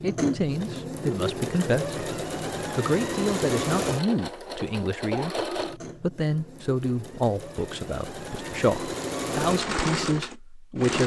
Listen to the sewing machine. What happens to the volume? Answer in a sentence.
The loudness of the sewing machine goes down, then up.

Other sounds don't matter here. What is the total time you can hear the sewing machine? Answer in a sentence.
The sewing machine can be heard for 11 seconds in total.